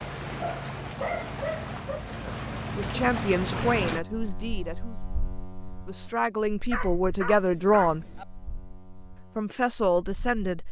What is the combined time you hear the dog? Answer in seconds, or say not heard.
3 s.